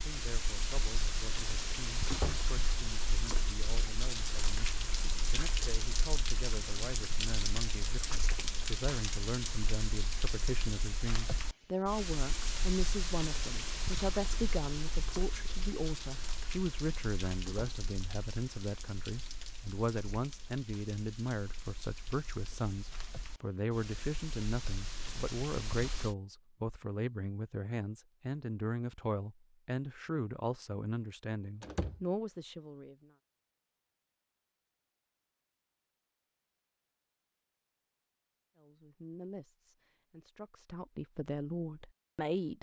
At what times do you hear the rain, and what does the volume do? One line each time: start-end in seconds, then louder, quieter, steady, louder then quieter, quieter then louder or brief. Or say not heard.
0.0-26.1 quieter.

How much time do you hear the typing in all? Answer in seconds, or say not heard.
not heard.